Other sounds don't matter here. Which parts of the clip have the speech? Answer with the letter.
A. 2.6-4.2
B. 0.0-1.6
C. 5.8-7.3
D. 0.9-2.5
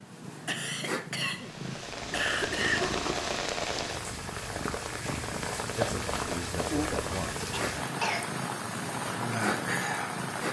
C.